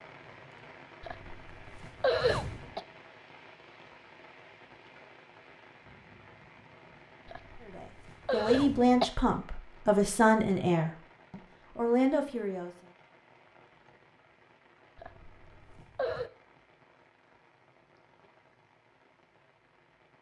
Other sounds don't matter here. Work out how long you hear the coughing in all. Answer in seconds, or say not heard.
5 s.